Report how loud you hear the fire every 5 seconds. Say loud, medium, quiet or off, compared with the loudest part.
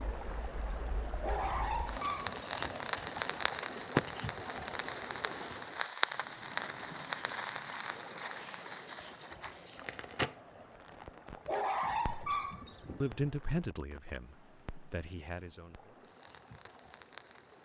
loud, loud, medium, quiet.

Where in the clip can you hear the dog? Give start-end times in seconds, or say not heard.
1.2-2.9, 11.4-13.2.